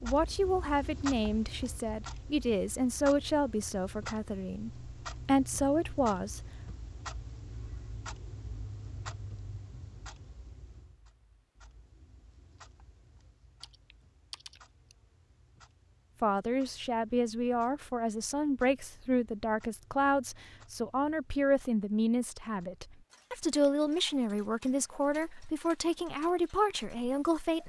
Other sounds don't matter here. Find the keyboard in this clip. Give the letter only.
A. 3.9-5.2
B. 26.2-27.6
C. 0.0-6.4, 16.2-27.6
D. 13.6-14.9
D.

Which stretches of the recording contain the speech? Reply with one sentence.
You can hear the speech from 0.0 to 6.4 s and from 16.2 to 27.6 s.